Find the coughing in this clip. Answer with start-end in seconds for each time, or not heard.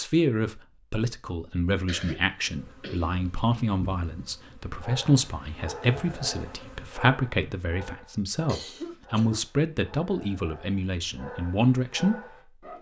1.9-3.2, 8.4-9.4.